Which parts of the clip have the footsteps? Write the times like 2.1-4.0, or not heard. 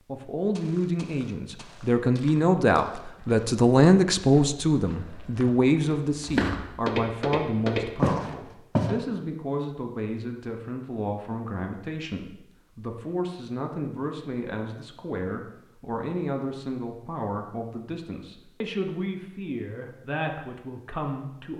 0.5-8.9.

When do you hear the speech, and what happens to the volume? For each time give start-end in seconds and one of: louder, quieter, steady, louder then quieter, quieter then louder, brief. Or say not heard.
0.1-21.5 quieter.